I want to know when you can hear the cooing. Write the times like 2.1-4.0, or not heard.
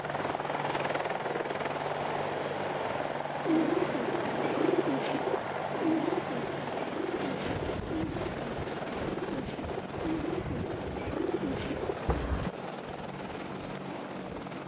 3.4-12.5.